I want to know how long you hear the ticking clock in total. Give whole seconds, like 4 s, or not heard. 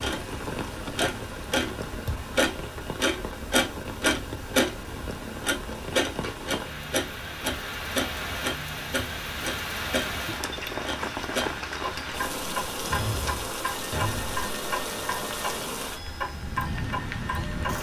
18 s.